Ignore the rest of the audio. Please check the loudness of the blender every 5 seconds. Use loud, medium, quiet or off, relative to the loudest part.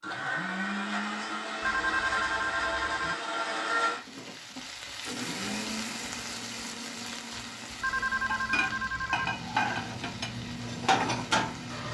loud, medium, medium.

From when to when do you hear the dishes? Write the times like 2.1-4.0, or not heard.
8.2-11.8.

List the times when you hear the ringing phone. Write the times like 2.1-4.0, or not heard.
1.6-3.1, 7.8-9.3.